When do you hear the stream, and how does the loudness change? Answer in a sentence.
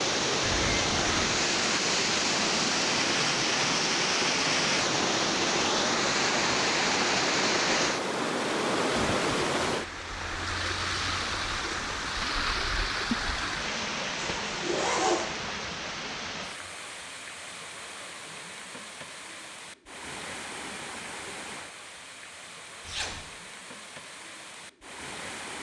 The stream can be heard from 0.0 to 25.5 s, getting quieter.